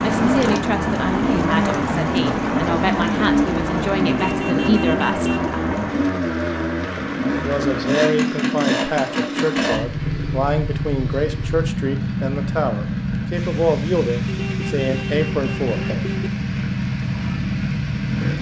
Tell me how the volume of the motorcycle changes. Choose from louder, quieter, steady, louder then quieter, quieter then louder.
steady.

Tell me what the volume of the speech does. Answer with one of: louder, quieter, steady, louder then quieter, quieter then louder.
steady.